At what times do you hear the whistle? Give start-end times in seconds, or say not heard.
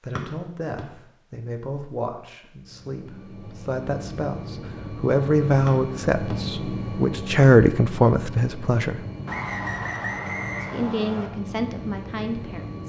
0.1-0.8, 5.7-6.3, 9.2-11.3.